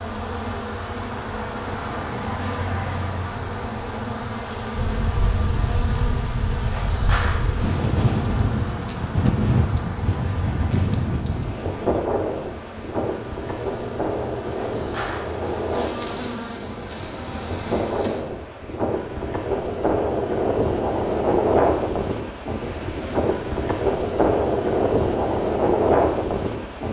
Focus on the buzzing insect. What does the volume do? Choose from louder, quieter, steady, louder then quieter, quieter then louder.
quieter then louder.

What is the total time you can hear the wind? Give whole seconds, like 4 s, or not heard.
22 s.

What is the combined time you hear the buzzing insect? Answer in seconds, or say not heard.
18 s.